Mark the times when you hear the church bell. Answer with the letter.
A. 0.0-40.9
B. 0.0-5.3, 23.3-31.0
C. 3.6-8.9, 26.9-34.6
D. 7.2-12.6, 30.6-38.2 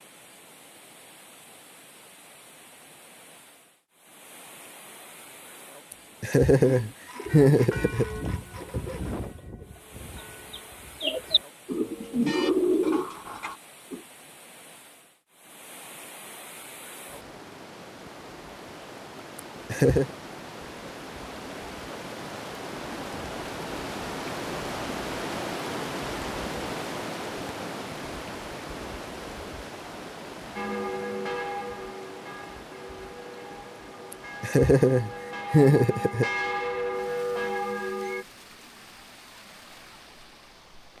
D.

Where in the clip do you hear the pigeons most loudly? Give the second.
13 s.